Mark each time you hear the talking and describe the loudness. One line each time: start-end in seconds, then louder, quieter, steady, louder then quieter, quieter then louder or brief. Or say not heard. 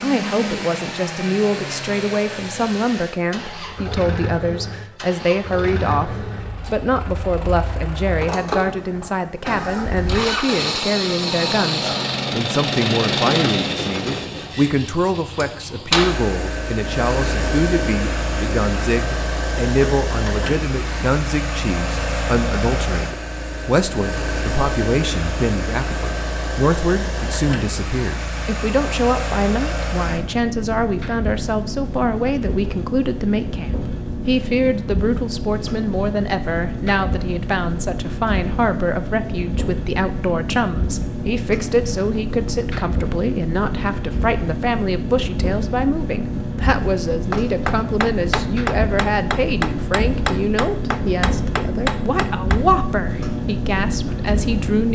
0.0-54.9 steady.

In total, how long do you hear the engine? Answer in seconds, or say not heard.
55 s.